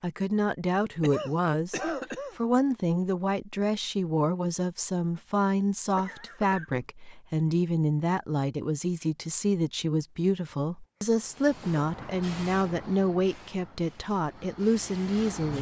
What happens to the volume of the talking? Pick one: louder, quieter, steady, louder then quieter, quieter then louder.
steady.